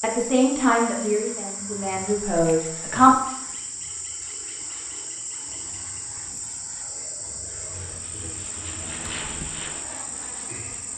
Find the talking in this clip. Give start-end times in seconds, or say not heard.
0.0-3.1.